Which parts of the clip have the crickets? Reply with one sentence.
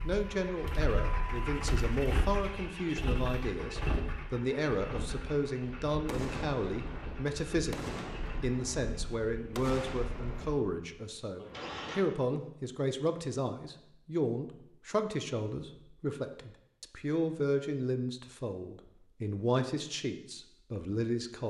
You can't hear the crickets here.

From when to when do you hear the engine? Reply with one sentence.
You can hear the engine from 0.0 to 12.0 s.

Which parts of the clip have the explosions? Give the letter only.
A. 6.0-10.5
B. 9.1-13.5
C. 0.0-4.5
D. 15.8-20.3
A.